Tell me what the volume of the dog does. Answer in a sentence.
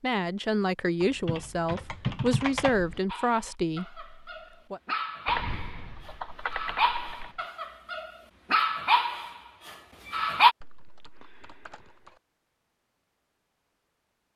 The volume of the dog goes up.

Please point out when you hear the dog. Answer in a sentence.
The dog can be heard from 3.0 to 10.6 s.